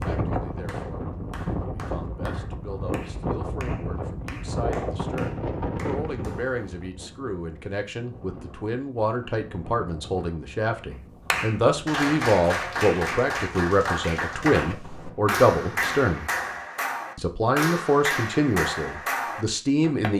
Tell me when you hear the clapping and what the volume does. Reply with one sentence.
The clapping can be heard from 0.0 to 6.4 s, at a steady volume; and from 11.2 to 20.1 s, at a steady volume.